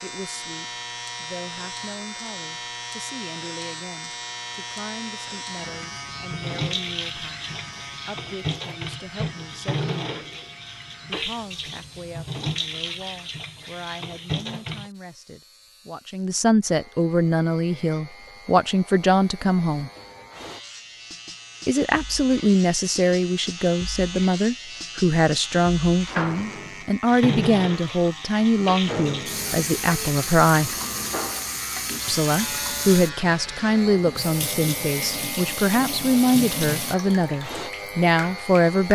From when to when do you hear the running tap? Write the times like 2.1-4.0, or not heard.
6.1-14.9, 27.1-38.8.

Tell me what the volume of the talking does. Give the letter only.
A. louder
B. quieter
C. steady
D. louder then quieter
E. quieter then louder
A.